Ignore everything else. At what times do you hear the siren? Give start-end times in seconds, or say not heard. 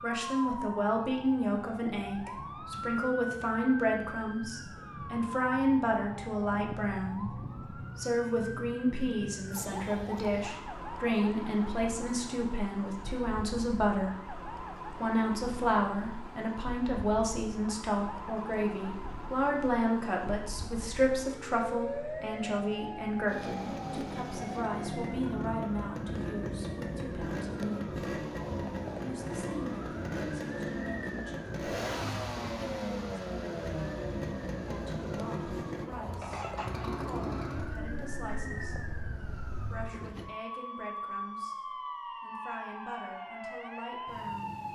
0.0-44.7.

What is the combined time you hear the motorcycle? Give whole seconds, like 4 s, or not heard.
17 s.